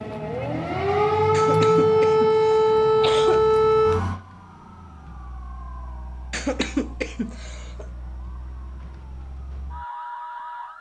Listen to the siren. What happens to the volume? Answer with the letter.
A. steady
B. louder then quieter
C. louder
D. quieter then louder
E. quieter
D.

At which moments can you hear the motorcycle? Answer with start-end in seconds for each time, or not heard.
not heard.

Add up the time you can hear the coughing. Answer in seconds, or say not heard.
4 s.